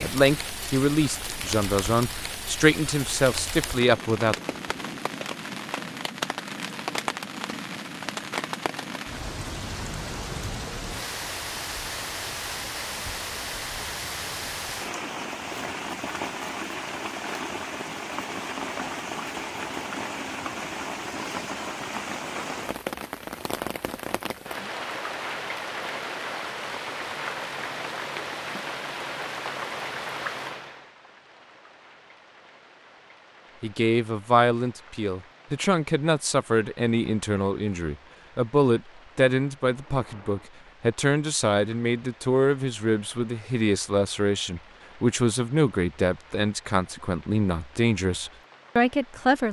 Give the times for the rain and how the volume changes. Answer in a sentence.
The rain can be heard from 0.0 to 49.4 s, getting quieter.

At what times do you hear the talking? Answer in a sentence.
The talking can be heard from 0.0 to 4.3 s and from 33.6 to 49.4 s.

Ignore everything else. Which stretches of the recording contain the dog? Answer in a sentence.
You can't hear the dog here.